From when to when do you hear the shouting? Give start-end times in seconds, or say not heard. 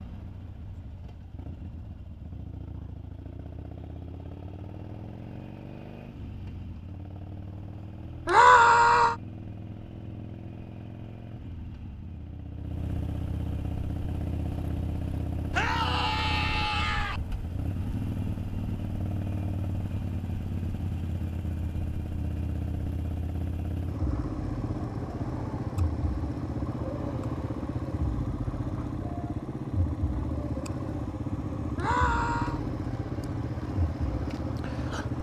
8.2-9.2, 15.5-17.2, 31.8-32.6.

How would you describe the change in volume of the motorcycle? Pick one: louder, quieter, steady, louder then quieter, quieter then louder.
louder.